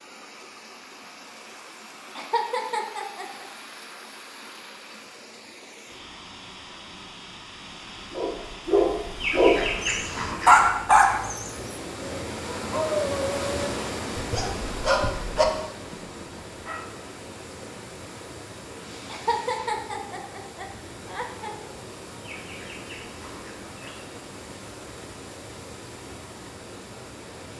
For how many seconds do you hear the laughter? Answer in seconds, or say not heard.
4 s.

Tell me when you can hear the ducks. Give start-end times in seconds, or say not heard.
9.2-10.7, 22.2-24.1.